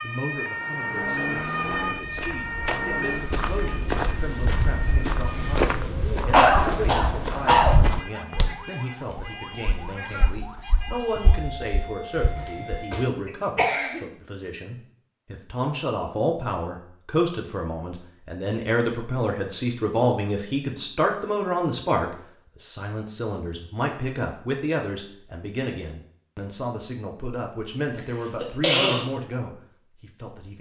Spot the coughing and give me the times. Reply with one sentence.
You can hear the coughing from 6.3 to 7.8 s, from 12.2 to 14.1 s and from 27.9 to 29.1 s.